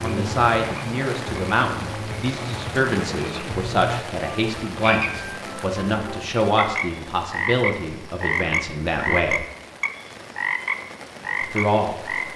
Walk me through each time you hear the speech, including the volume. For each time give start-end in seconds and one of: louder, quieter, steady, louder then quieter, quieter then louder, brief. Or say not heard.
0.0-9.4 steady
11.4-12.3 brief.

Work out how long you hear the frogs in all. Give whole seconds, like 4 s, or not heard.
12 s.